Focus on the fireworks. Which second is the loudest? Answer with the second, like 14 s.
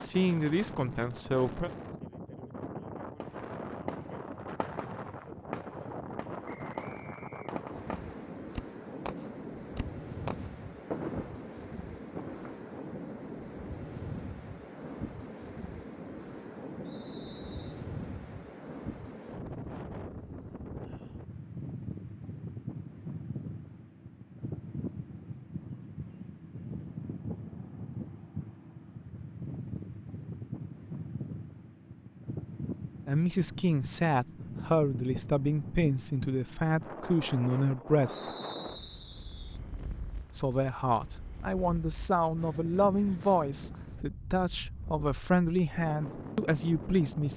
11 s.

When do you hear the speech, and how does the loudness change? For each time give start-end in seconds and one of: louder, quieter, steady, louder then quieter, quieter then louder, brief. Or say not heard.
0.0-1.7 brief
33.0-38.3 steady
40.3-47.3 steady.